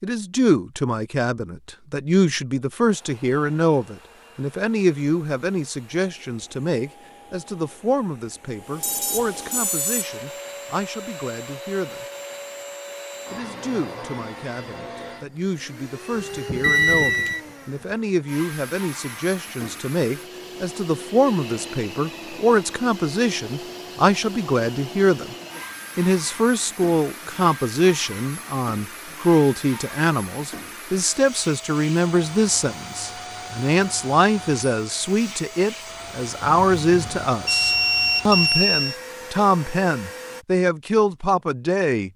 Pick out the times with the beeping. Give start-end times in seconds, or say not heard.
8.8-10.1, 16.6-17.4, 36.4-39.0.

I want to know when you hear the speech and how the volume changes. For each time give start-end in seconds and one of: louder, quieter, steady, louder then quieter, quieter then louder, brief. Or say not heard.
0.0-12.1 quieter
13.3-25.4 louder
25.9-42.1 steady.